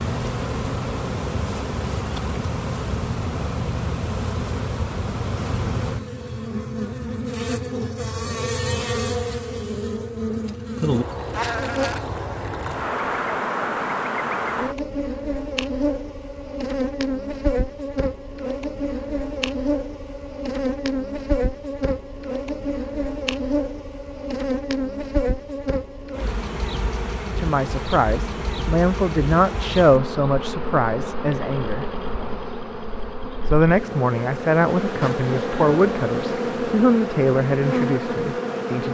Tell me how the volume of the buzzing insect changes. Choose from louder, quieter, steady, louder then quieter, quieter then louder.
steady.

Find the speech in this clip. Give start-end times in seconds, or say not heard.
27.4-31.9, 33.5-38.9.